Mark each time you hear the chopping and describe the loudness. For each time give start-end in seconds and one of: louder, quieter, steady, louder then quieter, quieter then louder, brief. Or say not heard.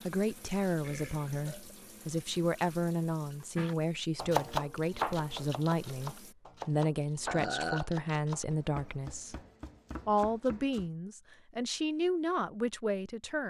3.5-10.9 quieter.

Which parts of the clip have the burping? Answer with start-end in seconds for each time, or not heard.
0.8-1.8, 7.2-7.9.